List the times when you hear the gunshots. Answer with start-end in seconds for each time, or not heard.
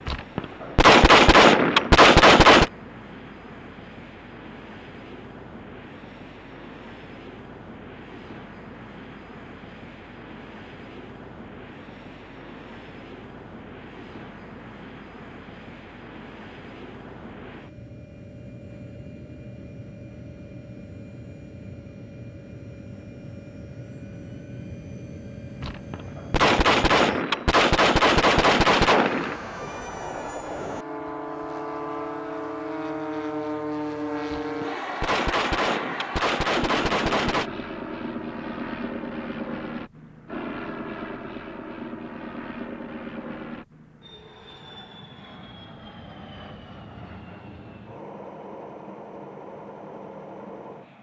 0.1-2.7, 25.6-29.4, 34.3-37.5.